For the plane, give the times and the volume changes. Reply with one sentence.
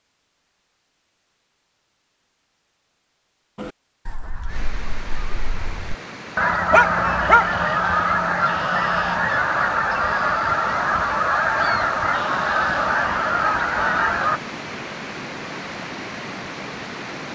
The plane can't be heard in this clip.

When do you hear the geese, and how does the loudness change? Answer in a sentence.
You can hear the geese from 3.5 to 14.4 s, getting louder.